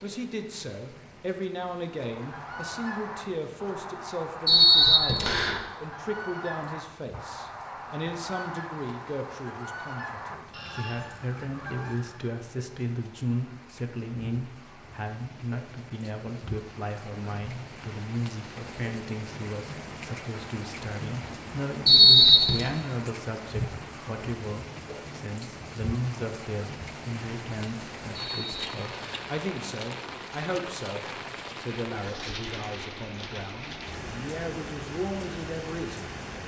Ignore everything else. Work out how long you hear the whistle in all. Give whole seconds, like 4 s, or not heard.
3 s.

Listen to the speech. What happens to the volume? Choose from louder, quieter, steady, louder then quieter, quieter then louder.
steady.